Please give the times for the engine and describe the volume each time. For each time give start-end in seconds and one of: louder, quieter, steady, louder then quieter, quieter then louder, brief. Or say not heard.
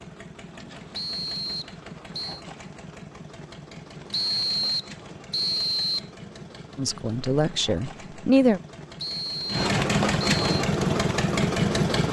0.0-12.0 louder.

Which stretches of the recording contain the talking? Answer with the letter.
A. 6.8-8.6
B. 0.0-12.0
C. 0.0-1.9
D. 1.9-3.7
A.